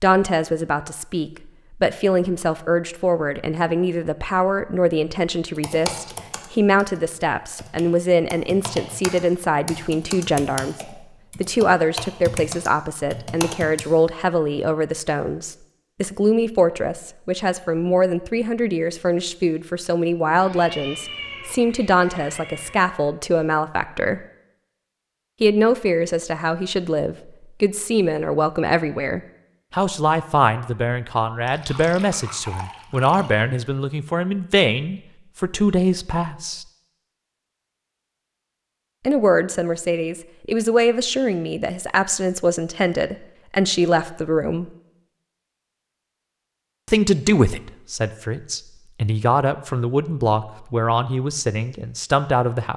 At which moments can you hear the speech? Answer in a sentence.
The speech can be heard from 0.0 to 24.2 s, from 25.4 to 36.6 s, from 39.0 to 44.7 s and from 46.9 to 52.7 s.